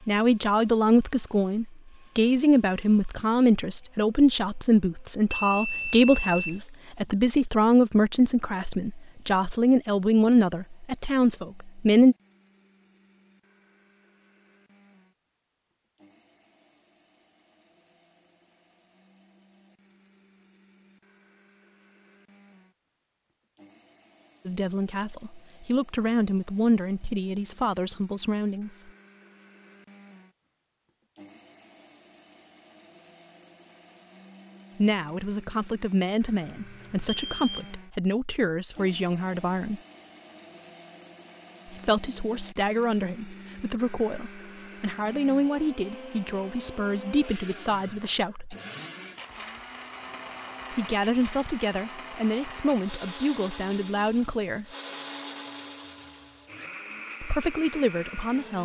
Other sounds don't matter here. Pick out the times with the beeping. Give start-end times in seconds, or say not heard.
5.3-6.6, 36.5-37.7.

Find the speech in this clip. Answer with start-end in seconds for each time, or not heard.
0.1-12.2, 24.4-28.9, 34.8-39.8, 41.6-48.5, 50.7-54.6, 57.2-58.6.